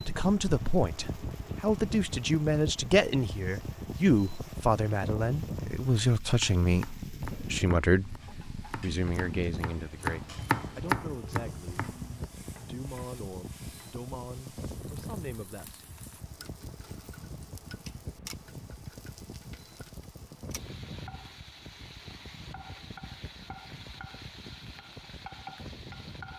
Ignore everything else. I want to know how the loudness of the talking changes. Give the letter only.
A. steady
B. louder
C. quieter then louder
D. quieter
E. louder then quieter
D.